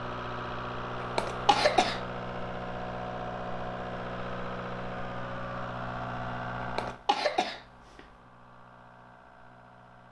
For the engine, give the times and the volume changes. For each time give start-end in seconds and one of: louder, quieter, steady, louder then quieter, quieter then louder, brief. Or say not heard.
0.0-10.0 quieter.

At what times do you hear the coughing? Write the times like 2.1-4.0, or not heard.
1.0-2.0, 6.6-8.1.